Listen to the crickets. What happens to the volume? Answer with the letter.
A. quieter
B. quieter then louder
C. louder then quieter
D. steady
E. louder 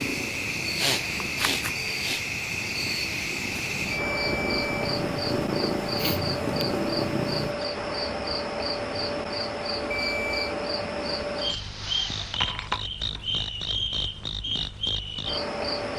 D.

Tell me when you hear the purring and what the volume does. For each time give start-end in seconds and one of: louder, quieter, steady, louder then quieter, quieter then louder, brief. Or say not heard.
0.0-7.5 louder.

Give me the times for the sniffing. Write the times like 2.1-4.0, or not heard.
0.8-2.2, 6.0-6.7, 11.4-12.4.